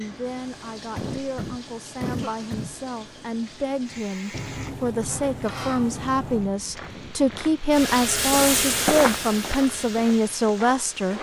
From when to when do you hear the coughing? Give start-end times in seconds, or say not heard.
0.9-2.8, 6.8-7.5.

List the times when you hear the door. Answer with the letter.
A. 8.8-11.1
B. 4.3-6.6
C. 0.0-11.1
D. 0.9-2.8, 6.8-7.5
B.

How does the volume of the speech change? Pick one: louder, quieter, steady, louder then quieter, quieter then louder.
louder.